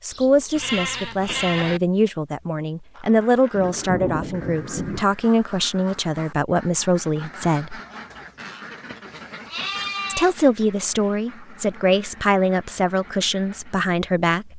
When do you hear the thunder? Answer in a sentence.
You can hear the thunder from 3.5 to 5.0 s.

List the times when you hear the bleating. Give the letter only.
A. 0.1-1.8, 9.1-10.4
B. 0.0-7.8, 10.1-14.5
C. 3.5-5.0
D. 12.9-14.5
A.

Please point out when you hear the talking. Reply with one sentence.
The talking can be heard from 0.0 to 7.8 s and from 10.1 to 14.5 s.